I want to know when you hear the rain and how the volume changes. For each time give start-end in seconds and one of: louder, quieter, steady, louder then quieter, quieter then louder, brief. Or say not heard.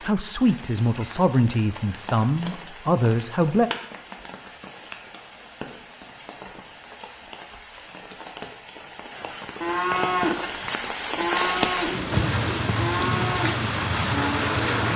0.0-14.9 louder.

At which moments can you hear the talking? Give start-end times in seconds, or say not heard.
0.0-3.7.